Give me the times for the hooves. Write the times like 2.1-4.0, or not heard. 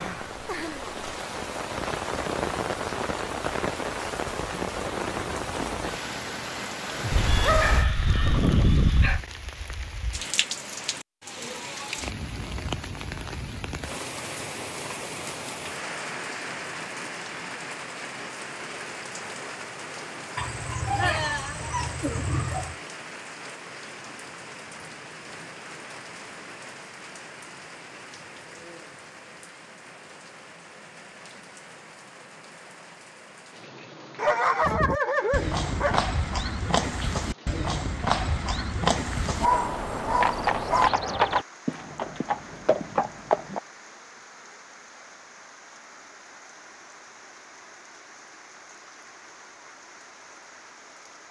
34.6-43.6.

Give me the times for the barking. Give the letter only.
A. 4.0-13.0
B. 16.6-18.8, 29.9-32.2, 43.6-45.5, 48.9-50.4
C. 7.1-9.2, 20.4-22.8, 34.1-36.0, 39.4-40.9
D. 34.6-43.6
C.